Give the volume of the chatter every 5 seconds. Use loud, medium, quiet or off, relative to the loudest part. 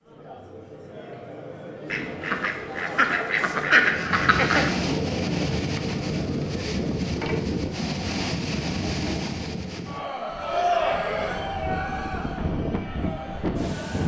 medium, medium, loud.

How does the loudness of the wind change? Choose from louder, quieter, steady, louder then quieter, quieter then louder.
quieter then louder.